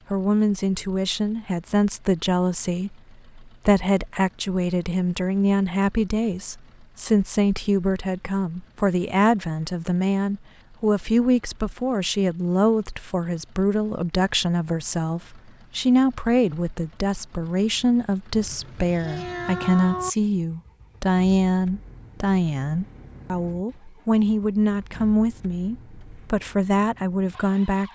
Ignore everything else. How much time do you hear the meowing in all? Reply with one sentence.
You can hear the meowing for 2 seconds altogether.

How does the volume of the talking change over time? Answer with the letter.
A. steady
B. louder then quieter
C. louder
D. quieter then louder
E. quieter
A.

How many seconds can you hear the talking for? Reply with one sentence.
You can hear the talking for 28 seconds altogether.